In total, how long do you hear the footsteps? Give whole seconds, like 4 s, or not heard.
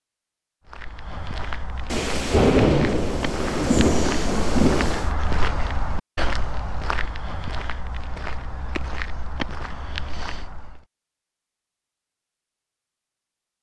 10 s.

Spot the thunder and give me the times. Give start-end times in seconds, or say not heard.
1.9-5.1.